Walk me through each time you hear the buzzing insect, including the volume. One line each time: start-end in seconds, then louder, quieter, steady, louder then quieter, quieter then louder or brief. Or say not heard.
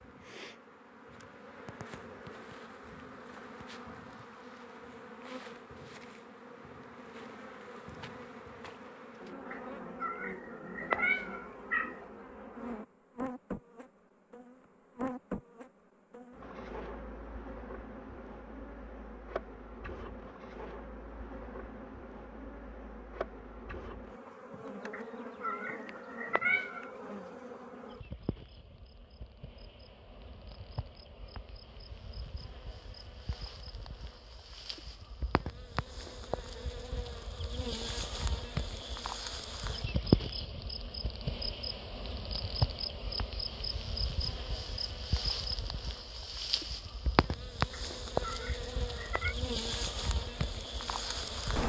0.0-51.6 louder.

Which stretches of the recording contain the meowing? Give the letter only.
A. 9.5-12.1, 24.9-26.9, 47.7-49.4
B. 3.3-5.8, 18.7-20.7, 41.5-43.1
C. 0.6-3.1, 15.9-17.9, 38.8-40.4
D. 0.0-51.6
A.